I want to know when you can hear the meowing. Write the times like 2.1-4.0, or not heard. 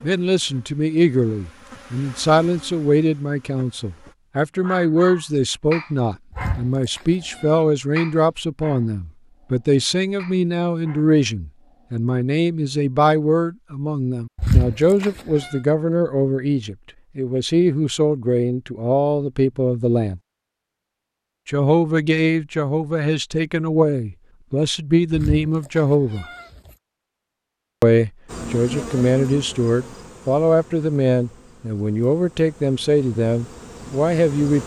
6.3-7.6, 14.3-15.5, 25.1-26.7.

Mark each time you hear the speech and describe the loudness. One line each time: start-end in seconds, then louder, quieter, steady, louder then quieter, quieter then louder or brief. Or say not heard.
0.0-20.2 steady
21.4-26.2 steady
27.8-34.6 steady.